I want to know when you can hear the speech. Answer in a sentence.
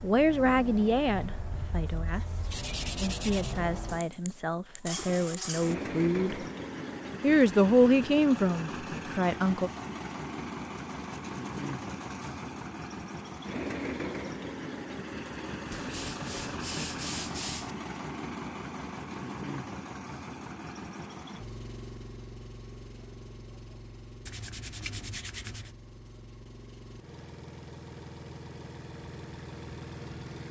The speech can be heard from 0.0 to 6.5 s and from 7.2 to 9.7 s.